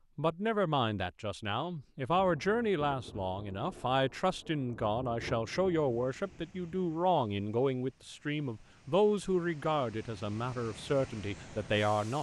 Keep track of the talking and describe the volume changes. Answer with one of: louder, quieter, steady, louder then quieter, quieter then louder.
steady.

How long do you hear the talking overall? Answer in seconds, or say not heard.
12 s.